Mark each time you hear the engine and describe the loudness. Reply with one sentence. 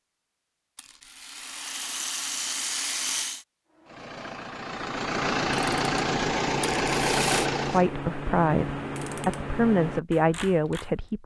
The engine can be heard from 3.7 to 7.8 s, getting louder.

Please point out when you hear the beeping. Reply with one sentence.
The beeping can't be heard in this clip.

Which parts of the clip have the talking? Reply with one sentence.
The talking can be heard from 7.7 to 11.2 s.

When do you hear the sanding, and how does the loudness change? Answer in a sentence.
The sanding can't be heard in this clip.